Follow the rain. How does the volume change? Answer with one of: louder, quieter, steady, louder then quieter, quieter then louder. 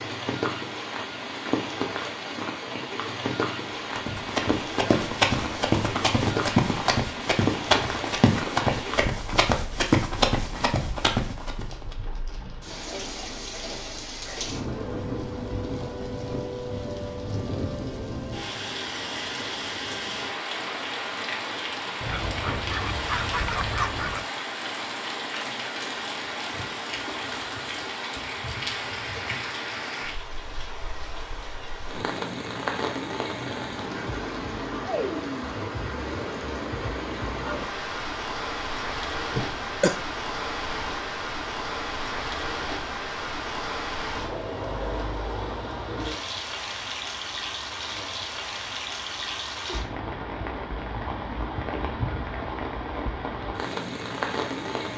steady.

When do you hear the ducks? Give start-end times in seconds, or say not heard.
22.0-24.2.